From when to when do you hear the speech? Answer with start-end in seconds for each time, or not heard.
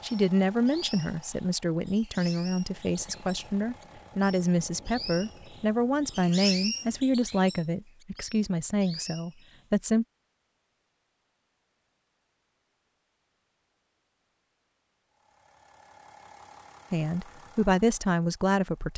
0.0-10.1, 16.9-18.9.